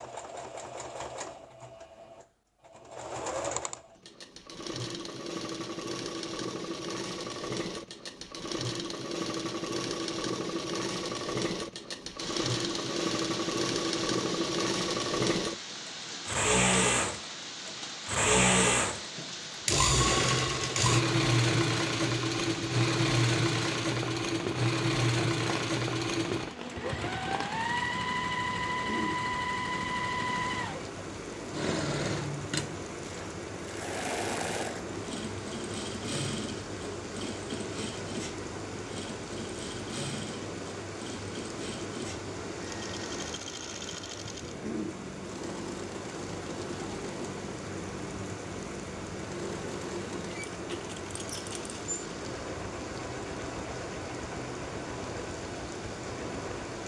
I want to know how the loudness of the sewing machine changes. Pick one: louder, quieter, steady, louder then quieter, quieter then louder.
louder then quieter.